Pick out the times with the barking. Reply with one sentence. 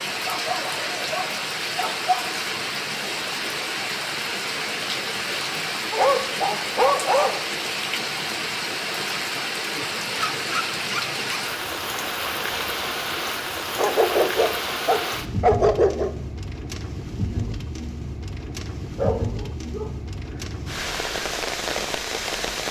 You can hear the barking from 0.2 to 2.2 s, from 5.9 to 7.5 s, from 10.2 to 11.6 s, from 13.8 to 16.1 s and from 18.9 to 19.9 s.